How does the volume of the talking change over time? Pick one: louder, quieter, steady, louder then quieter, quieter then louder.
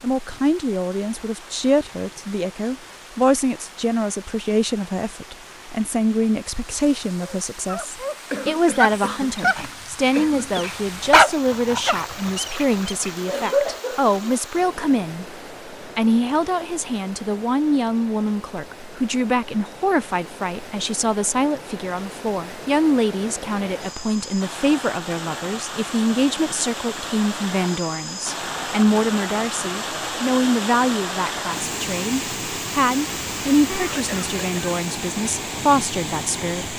steady.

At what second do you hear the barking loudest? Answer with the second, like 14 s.
11 s.